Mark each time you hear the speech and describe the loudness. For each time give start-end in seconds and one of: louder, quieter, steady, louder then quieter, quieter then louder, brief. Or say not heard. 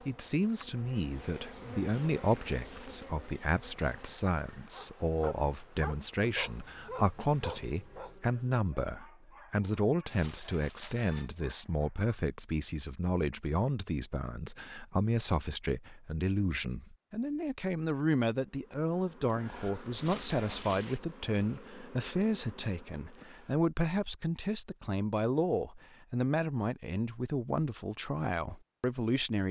0.1-29.4 steady.